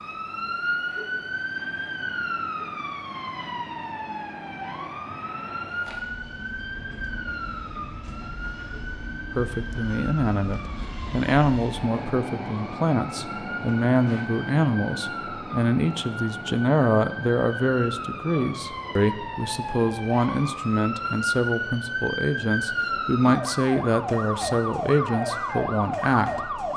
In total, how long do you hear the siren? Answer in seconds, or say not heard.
27 s.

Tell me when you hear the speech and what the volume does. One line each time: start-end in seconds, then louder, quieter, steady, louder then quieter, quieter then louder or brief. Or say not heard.
9.3-26.6 steady.